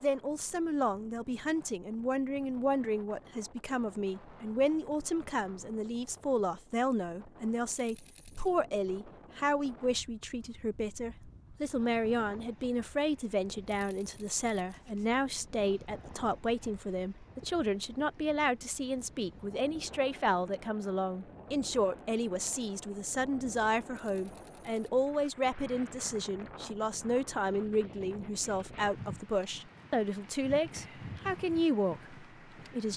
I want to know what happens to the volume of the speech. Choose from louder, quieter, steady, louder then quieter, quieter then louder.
steady.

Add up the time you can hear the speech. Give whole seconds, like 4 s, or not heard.
33 s.